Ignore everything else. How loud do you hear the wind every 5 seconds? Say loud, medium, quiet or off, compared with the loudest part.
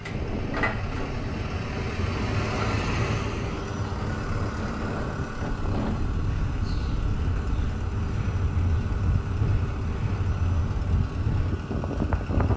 medium, loud, loud.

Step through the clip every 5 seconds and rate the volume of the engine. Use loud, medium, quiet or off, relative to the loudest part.
loud, medium, medium.